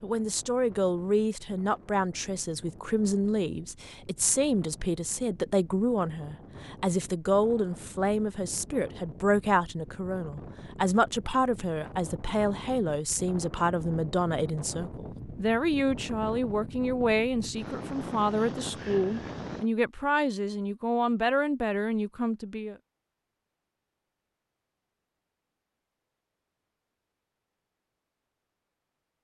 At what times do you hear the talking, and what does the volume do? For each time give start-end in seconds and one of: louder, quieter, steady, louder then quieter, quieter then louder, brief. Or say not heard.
0.0-22.8 steady.